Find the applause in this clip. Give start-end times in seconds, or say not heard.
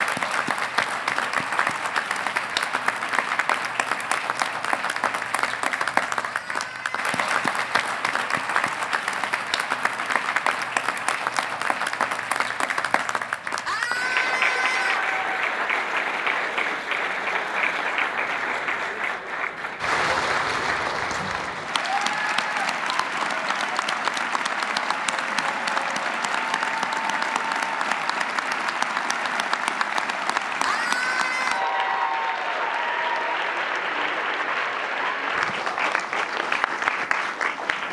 0.0-37.8.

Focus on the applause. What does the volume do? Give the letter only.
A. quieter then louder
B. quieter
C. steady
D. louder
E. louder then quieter
C.